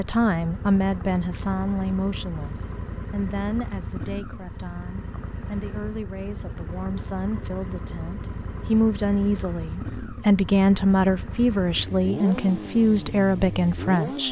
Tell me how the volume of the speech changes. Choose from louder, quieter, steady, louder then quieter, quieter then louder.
quieter then louder.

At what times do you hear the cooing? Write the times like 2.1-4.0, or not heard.
not heard.